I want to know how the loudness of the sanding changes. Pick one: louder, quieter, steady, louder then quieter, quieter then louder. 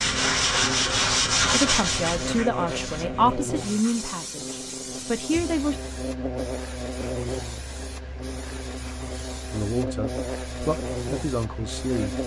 quieter.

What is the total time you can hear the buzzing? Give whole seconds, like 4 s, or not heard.
12 s.